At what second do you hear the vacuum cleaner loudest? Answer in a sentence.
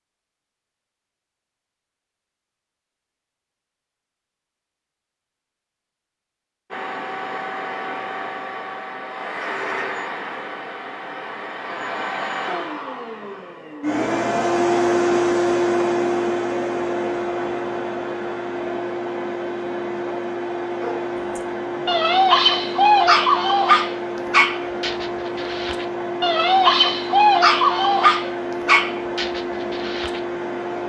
The loudest moment of the vacuum cleaner is at 15 seconds.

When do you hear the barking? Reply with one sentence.
You can hear the barking from 20.8 to 30.2 s.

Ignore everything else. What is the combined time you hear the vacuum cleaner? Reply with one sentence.
The vacuum cleaner can be heard for 24 seconds in total.